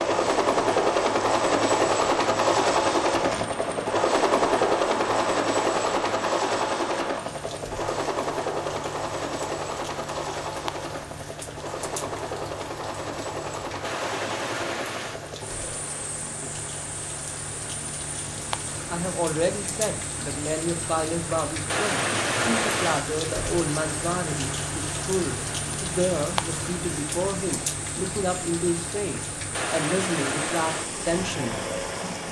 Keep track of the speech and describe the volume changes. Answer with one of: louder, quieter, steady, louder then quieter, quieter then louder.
steady.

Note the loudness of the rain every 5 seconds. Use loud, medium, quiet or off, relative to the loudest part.
medium, medium, medium, medium, loud, loud, loud.